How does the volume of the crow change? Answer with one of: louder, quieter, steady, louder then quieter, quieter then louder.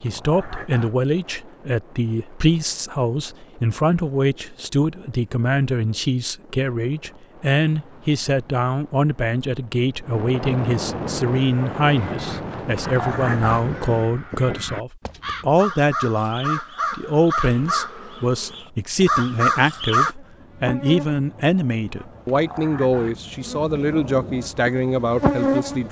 louder.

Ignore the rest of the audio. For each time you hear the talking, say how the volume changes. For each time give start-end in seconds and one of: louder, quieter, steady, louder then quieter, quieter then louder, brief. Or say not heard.
0.0-25.8 steady.